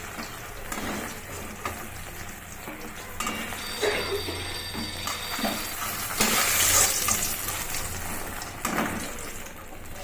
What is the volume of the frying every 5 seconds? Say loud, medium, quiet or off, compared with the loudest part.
medium, loud.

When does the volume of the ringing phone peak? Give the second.
4 s.